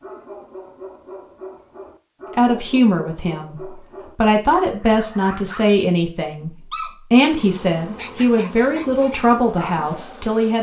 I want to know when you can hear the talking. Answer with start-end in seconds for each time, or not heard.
2.4-10.5.